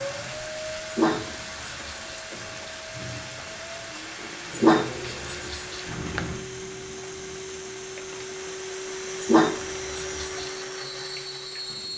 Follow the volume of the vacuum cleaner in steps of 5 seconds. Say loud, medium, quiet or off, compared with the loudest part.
medium, loud, loud.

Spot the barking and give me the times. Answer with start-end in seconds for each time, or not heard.
0.8-2.1, 4.5-5.8, 9.2-10.5.